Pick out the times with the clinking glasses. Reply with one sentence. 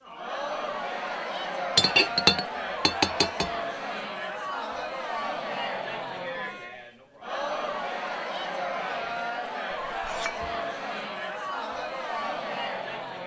The clinking glasses can be heard from 1.8 to 3.5 s and from 9.9 to 10.4 s.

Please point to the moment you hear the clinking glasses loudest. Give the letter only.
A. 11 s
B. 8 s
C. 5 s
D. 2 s
D.